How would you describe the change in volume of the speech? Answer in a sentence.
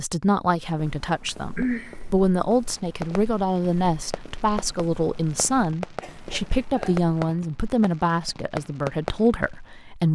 The loudness of the speech stays about the same.